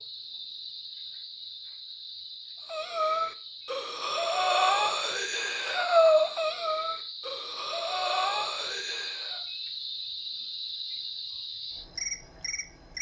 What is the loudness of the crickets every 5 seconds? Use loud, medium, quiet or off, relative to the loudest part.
medium, loud, loud.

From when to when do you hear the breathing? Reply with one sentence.
The breathing can be heard from 2.7 to 9.4 s.